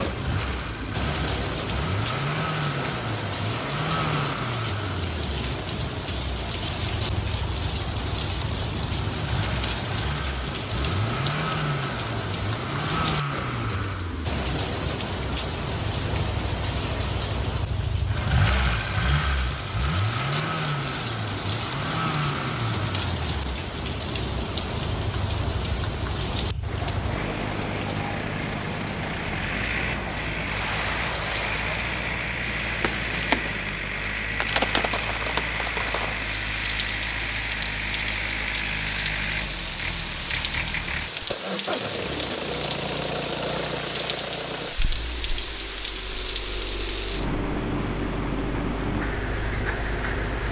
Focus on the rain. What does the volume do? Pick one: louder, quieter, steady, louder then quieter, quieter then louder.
steady.